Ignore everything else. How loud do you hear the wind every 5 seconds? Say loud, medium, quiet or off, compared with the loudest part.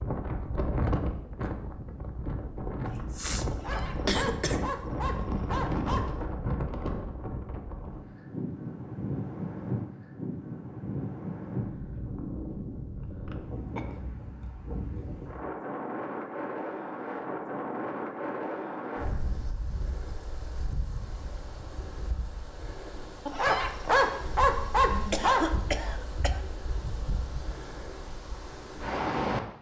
loud, loud, loud, loud, medium, loud.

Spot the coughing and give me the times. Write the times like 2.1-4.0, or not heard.
2.9-4.7, 13.0-13.8, 25.1-26.4.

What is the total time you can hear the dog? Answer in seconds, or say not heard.
5 s.